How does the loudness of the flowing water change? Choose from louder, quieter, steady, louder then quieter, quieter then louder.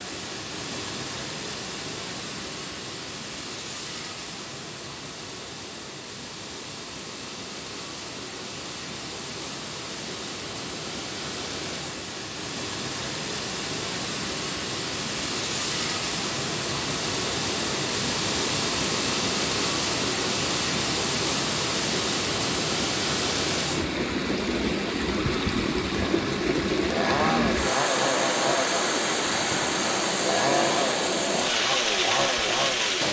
louder.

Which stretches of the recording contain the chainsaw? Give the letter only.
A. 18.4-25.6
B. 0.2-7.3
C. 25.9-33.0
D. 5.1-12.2
C.